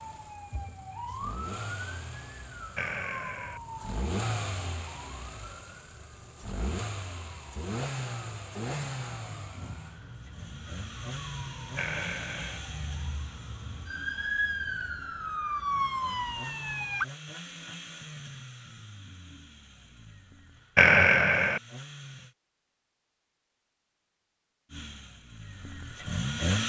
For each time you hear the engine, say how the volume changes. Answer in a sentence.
You can hear the engine from 0.0 to 22.4 s, getting quieter; and briefly from 24.7 to 26.6 s.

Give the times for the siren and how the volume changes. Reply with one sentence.
You can hear the siren from 0.0 to 17.1 s, getting quieter then louder.